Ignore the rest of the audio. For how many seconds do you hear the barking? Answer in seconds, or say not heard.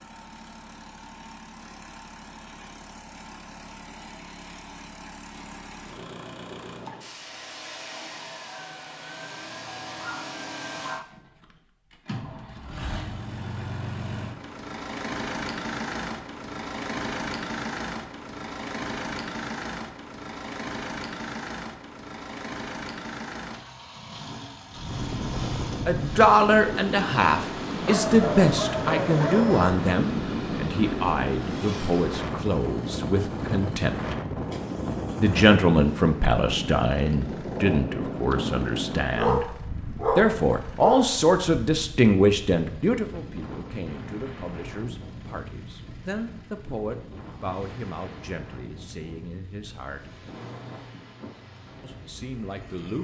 5 s.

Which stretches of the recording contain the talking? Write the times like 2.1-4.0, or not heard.
25.9-34.1, 35.2-39.5, 40.1-50.1, 51.8-52.9.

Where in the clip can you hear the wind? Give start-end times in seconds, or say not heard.
24.7-52.9.